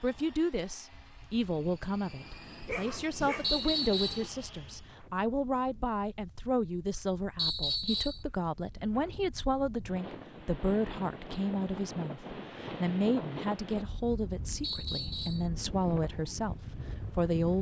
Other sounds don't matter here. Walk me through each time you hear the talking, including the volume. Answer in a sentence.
The talking can be heard from 0.0 to 17.5 s, at a steady volume.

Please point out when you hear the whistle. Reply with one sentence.
You can hear the whistle from 3.4 to 4.2 s, from 7.3 to 8.2 s and from 14.6 to 15.4 s.